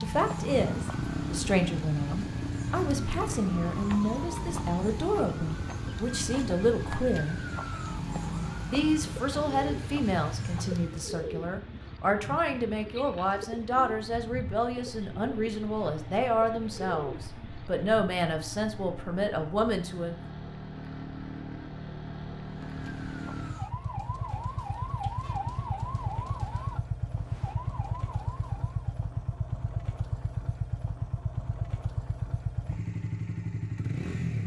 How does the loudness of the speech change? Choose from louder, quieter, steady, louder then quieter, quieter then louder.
steady.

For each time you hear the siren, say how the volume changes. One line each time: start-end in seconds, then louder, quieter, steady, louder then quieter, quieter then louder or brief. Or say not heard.
0.0-11.2 steady
22.4-28.8 louder then quieter.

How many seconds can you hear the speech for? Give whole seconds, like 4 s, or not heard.
19 s.